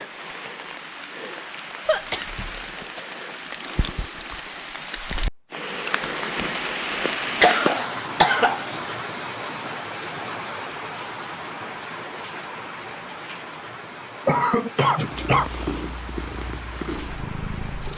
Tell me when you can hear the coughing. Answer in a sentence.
The coughing can be heard from 1.9 to 3.0 s, from 7.0 to 8.7 s and from 14.2 to 15.4 s.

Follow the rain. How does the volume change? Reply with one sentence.
The loudness of the rain goes up, then down.